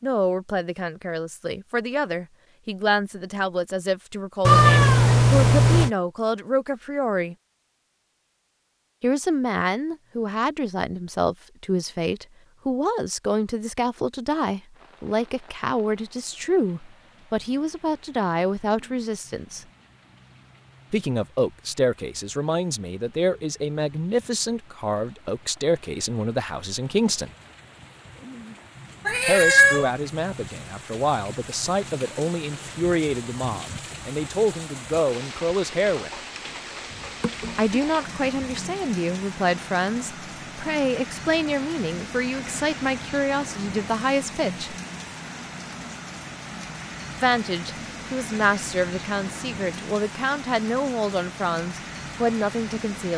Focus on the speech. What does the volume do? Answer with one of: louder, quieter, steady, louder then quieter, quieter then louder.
steady.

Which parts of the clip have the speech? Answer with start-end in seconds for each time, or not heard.
0.0-7.3, 9.0-19.6, 20.9-27.3, 29.2-36.1, 37.5-44.8, 47.1-53.1.